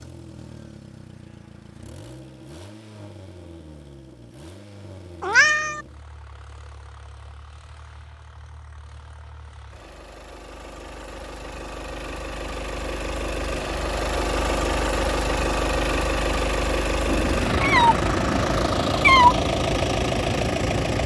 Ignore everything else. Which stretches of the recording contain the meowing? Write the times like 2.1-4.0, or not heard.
5.2-5.8, 17.1-19.4.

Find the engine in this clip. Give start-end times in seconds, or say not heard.
0.0-21.0.